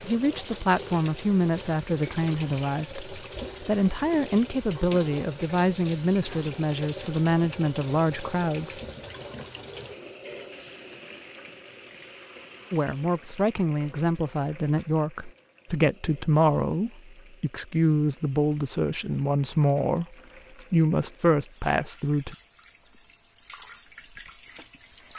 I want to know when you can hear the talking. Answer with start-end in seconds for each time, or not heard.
0.0-8.8, 12.7-22.4.